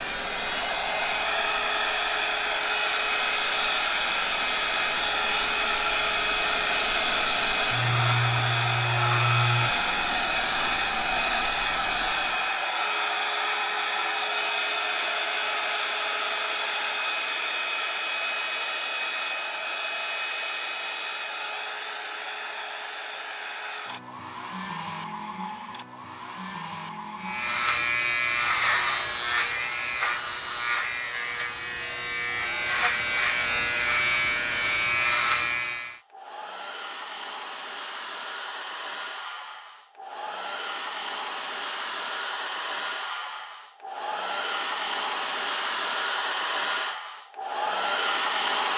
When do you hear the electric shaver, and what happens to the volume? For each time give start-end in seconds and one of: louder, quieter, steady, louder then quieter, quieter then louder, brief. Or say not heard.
0.0-12.6 louder
27.2-36.0 quieter then louder.